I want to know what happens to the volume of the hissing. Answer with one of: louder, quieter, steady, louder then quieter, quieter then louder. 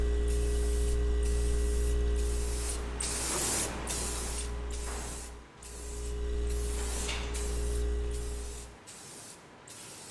louder then quieter.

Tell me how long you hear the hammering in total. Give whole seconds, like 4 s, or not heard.
not heard.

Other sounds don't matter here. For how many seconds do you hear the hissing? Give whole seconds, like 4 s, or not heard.
10 s.